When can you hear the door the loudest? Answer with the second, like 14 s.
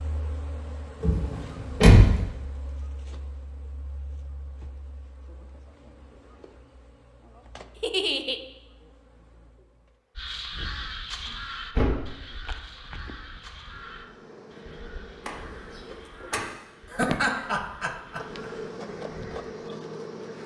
2 s.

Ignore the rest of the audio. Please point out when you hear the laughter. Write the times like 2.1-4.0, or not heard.
7.8-8.4, 16.9-18.5.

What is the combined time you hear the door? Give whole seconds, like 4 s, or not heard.
3 s.